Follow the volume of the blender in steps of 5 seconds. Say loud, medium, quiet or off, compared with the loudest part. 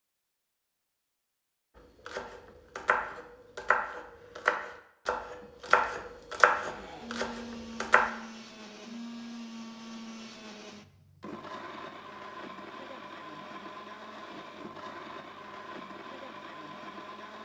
off, loud, loud, loud.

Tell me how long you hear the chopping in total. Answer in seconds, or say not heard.
6 s.